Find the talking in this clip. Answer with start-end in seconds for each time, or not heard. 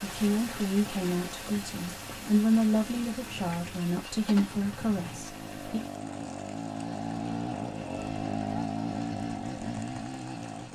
0.0-5.8.